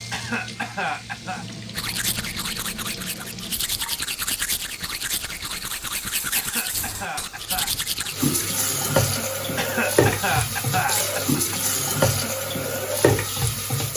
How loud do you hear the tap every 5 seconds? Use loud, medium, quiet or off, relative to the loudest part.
quiet, loud, loud.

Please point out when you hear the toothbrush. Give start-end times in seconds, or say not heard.
1.8-8.3.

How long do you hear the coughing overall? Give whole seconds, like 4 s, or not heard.
5 s.